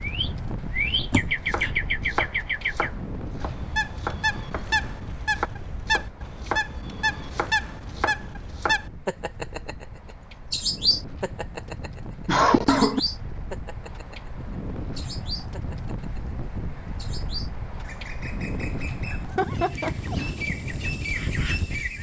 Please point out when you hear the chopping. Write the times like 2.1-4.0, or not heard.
1.4-8.8.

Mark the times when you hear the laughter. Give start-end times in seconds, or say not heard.
1.1-1.7, 12.2-13.0, 19.1-20.4.